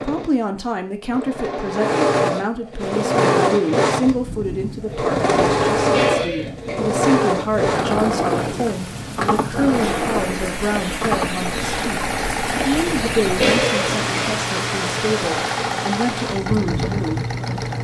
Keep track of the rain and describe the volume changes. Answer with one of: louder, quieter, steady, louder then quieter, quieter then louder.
louder.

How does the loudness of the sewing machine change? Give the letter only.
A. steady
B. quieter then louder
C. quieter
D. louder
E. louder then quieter
C.